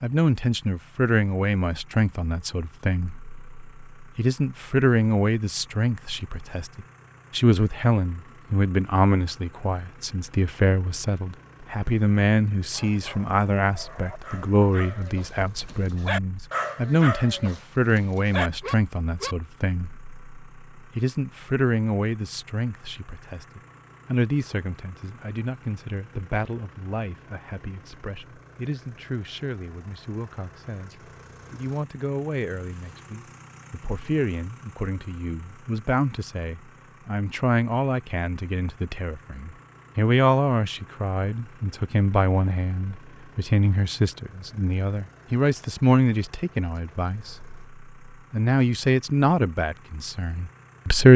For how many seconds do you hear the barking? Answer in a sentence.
The barking can be heard for 7 seconds in total.